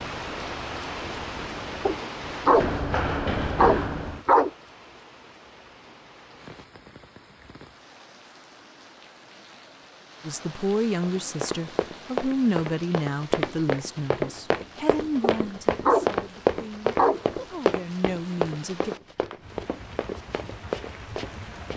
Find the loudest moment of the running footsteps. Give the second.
16 s.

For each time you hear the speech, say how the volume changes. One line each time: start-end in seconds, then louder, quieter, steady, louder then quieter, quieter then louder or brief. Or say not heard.
10.2-18.9 quieter then louder.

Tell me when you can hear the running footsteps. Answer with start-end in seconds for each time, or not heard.
0.0-4.2, 11.0-21.7.